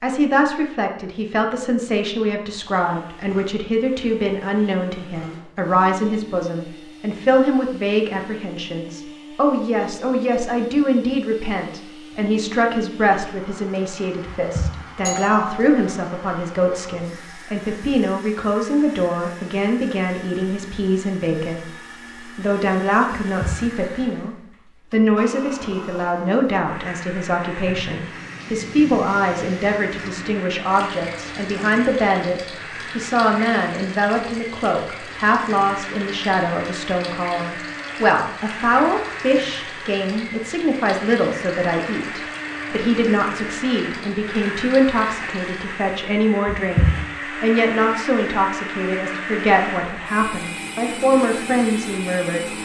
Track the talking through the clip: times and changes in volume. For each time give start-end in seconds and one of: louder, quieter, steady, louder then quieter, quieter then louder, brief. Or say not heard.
0.0-52.5 steady.